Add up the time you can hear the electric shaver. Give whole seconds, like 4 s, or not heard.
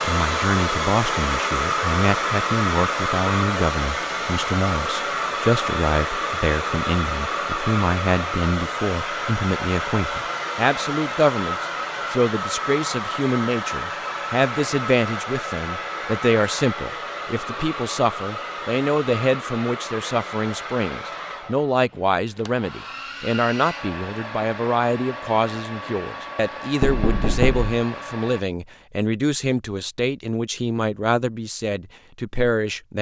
not heard.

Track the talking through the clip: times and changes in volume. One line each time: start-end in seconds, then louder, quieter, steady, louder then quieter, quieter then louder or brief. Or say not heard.
0.0-32.9 steady.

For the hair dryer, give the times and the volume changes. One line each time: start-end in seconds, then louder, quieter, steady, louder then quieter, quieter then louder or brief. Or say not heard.
0.0-28.4 quieter.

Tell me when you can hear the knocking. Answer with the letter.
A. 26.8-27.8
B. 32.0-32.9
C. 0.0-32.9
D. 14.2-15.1
A.